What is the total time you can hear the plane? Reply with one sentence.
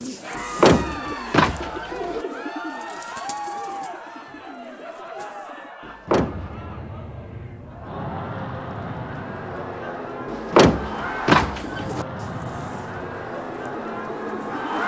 The plane can be heard for 9 seconds in total.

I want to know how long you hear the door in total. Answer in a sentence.
You can hear the door for 4 seconds altogether.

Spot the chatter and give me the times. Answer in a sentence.
You can hear the chatter from 0.1 to 14.8 s.